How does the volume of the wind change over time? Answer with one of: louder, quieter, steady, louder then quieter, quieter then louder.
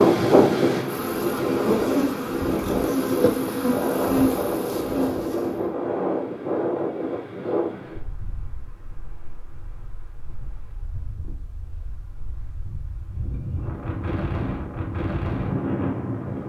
quieter then louder.